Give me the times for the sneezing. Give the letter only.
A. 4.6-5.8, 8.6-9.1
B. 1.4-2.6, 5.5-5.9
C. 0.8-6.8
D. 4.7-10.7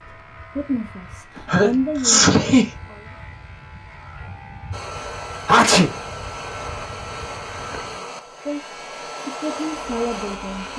B.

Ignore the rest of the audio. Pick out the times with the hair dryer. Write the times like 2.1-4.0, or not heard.
4.7-10.7.